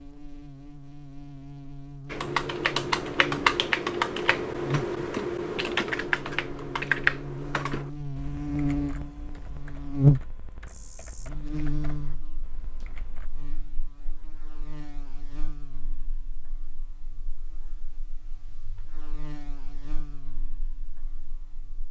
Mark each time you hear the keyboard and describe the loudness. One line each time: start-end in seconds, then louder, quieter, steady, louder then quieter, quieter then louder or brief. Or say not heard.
2.1-13.3 quieter.